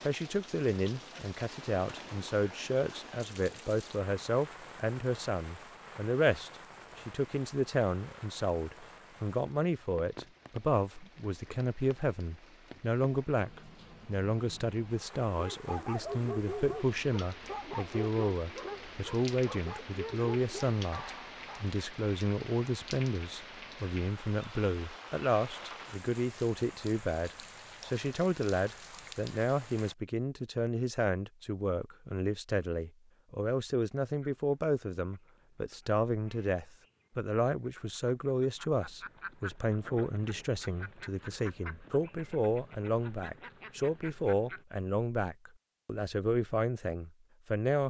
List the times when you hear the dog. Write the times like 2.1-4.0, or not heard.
15.3-21.7.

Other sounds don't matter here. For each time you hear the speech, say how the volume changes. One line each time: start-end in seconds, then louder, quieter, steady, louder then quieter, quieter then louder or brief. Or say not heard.
0.1-47.8 steady.